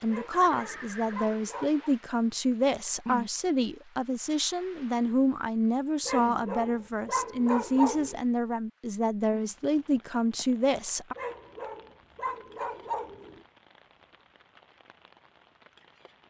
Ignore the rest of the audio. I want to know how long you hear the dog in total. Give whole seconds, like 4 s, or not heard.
6 s.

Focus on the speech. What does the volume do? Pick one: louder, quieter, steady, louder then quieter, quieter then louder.
steady.